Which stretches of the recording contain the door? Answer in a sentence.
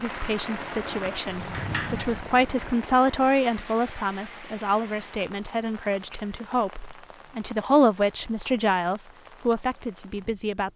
You can hear the door from 1.2 to 2.6 s.